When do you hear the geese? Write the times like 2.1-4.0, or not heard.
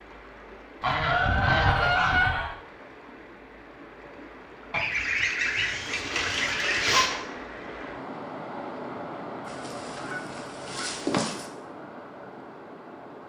0.8-2.5, 4.7-7.2, 9.4-11.4.